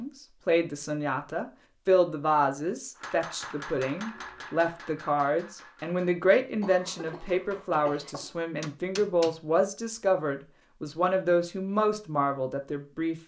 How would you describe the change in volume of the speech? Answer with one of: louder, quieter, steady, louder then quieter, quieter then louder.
steady.